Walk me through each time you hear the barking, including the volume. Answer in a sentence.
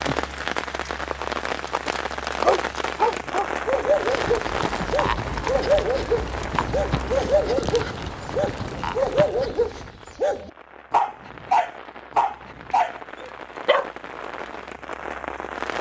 The barking can be heard from 2.4 to 13.9 s, at a steady volume.